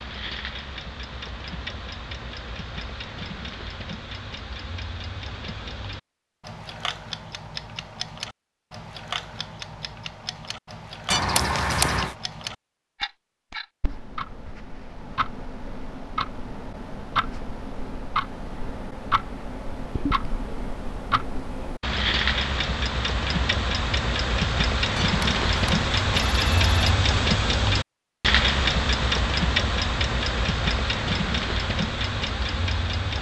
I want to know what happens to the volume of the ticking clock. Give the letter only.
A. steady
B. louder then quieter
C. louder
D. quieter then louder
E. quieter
C.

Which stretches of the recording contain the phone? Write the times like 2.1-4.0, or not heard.
11.1-12.2, 24.9-26.9.